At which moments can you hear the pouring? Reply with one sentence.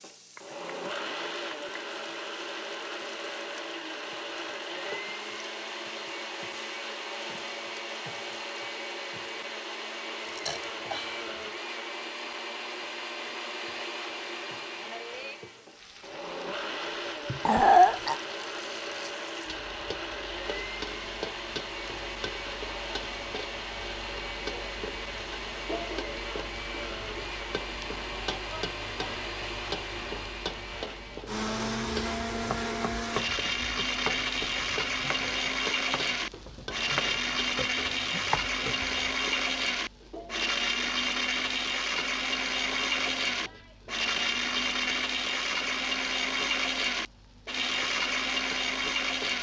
You can't hear the pouring here.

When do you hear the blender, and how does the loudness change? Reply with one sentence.
You can hear the blender from 0.0 to 49.3 s, getting louder.